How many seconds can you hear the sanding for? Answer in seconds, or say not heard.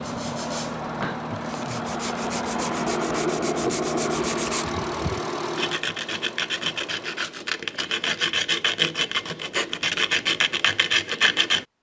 12 s.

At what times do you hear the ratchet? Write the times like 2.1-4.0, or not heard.
not heard.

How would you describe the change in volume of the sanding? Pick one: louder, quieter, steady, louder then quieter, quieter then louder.
louder.